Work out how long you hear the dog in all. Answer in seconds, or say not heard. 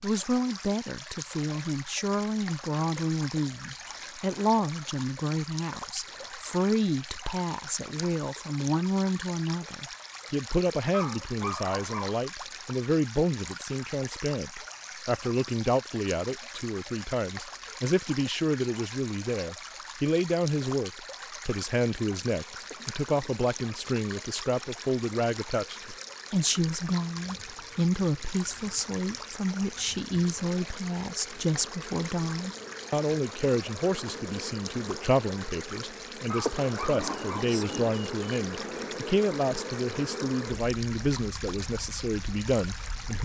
2 s.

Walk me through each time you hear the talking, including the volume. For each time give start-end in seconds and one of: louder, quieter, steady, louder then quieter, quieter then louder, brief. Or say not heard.
0.0-43.1 steady.